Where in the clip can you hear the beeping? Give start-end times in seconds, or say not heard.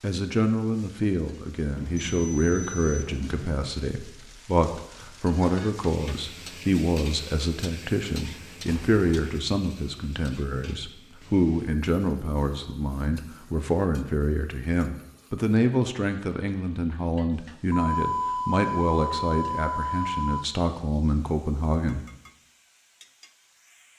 1.8-3.5, 8.7-9.3, 17.7-20.4.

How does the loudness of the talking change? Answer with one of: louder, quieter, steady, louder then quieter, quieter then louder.
steady.